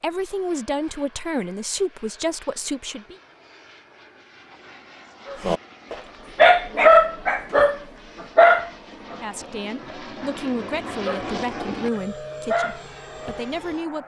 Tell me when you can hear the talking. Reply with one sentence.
The talking can be heard from 0.0 to 3.1 s and from 9.2 to 14.0 s.